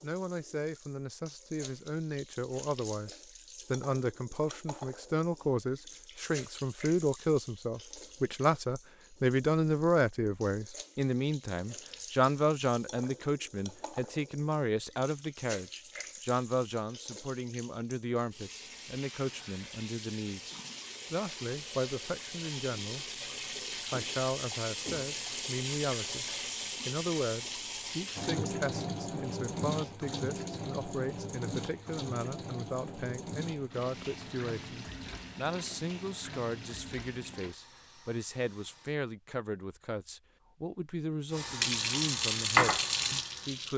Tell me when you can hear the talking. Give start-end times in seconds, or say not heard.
0.0-3.1, 3.7-23.1, 23.9-26.2, 26.9-43.7.